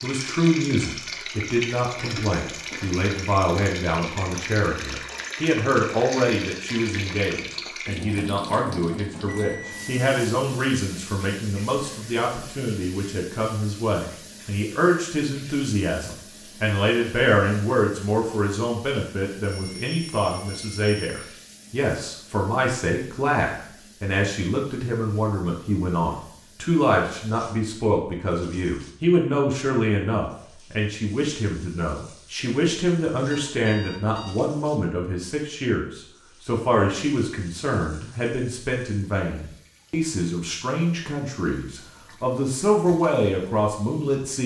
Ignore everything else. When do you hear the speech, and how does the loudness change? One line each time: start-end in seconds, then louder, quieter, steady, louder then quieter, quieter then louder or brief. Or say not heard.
0.0-44.4 steady.